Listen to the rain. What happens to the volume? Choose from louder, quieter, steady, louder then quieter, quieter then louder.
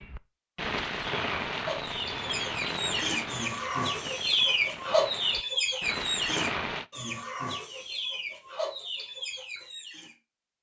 quieter then louder.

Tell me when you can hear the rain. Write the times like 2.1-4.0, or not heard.
0.0-6.8.